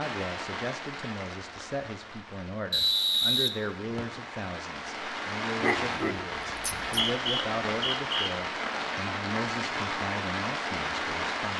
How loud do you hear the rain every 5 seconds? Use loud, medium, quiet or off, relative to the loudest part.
medium, loud, loud.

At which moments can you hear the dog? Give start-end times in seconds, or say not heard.
5.6-7.0.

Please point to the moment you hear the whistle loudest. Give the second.
3 s.